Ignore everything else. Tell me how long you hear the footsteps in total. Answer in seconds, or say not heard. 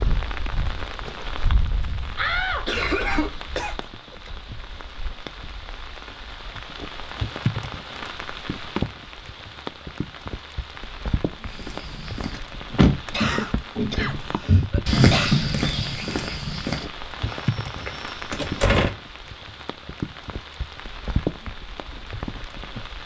7 s.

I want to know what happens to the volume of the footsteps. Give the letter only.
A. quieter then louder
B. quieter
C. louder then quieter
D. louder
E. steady
C.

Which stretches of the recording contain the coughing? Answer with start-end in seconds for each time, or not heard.
2.6-3.8, 13.1-15.4.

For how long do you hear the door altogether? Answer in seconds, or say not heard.
3 s.